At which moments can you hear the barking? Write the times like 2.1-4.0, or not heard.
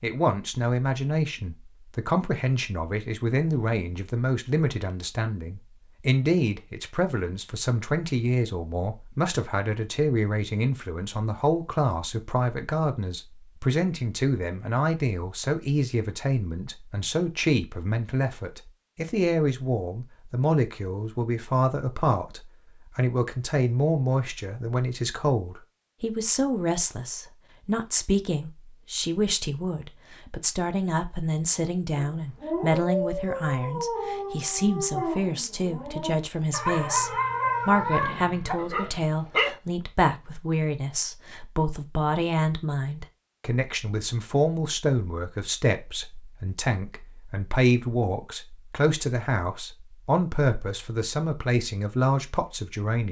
31.9-39.5.